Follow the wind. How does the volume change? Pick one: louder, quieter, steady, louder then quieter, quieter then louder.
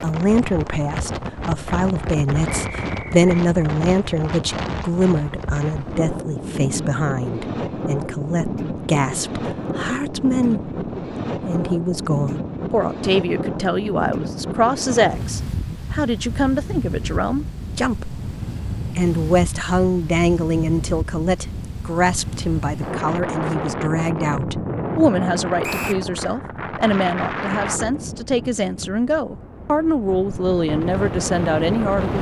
steady.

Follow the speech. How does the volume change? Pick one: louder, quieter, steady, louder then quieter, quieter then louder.
steady.